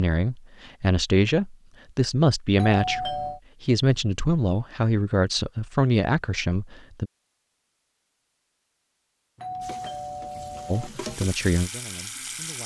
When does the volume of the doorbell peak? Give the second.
3 s.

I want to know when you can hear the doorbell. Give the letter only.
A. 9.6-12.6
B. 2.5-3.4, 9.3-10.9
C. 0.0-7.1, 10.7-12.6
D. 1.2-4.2
B.